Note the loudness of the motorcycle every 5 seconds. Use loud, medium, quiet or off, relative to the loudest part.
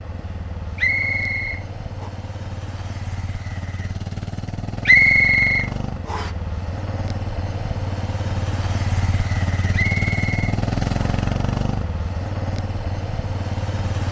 medium, loud, loud.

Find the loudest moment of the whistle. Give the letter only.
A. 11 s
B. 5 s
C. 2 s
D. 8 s
B.